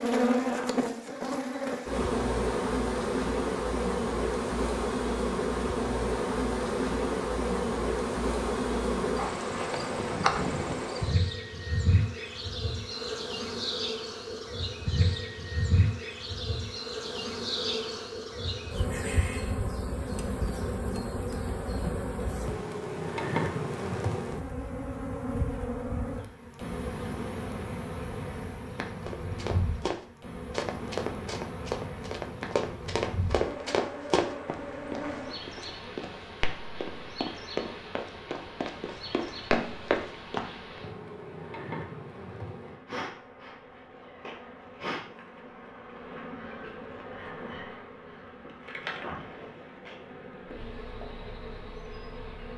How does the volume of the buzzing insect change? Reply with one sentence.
The volume of the buzzing insect goes down.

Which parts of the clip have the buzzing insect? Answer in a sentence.
You can hear the buzzing insect from 0.0 to 52.5 s.